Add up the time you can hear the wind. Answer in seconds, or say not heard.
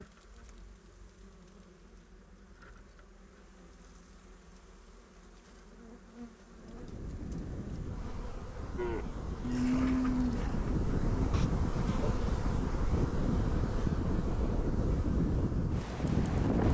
10 s.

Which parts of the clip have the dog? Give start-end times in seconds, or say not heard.
not heard.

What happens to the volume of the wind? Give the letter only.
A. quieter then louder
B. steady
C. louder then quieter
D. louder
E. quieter
D.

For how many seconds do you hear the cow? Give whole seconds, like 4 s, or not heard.
3 s.